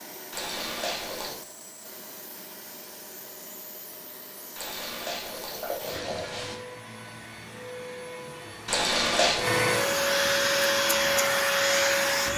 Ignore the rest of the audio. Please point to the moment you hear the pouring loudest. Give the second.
9 s.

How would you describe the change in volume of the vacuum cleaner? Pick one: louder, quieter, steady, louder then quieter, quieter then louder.
louder.